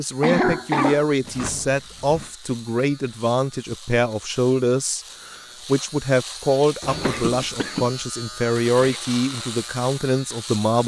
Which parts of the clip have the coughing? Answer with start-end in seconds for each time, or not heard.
0.2-1.1, 7.0-9.0.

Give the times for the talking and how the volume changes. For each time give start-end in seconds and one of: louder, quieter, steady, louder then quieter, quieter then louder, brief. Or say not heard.
0.0-10.8 steady.